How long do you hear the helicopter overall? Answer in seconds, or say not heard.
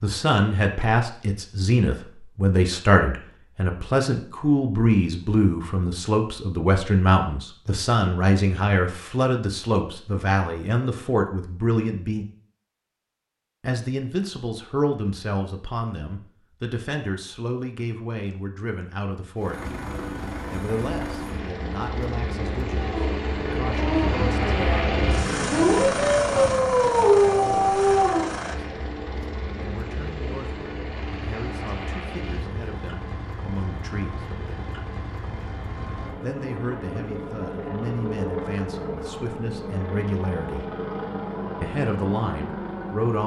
24 s.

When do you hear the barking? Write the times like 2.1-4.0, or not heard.
22.8-28.3.